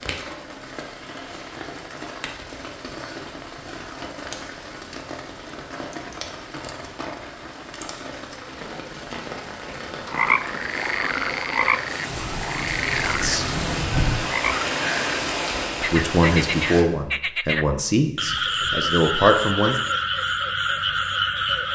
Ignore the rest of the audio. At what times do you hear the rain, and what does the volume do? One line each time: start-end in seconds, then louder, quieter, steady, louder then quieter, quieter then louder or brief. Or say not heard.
0.0-16.9 louder.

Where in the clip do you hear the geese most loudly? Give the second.
14 s.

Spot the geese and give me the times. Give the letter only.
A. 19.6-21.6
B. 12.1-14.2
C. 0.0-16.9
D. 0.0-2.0
B.